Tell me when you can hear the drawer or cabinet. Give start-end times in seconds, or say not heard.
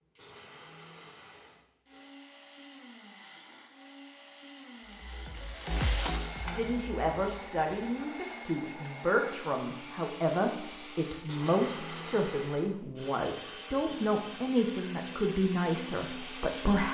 not heard.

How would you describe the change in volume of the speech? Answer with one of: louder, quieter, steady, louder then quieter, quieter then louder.
steady.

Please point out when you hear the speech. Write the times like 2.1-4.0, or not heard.
6.4-16.8.